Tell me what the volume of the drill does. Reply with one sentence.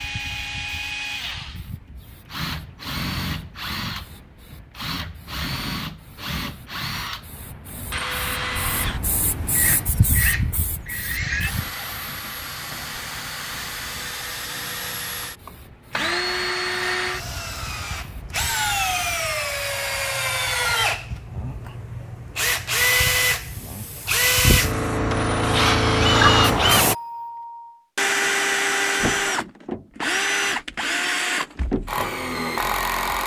The volume of the drill goes up.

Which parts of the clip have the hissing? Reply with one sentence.
The hissing can be heard from 0.0 to 19.2 s and from 23.3 to 26.9 s.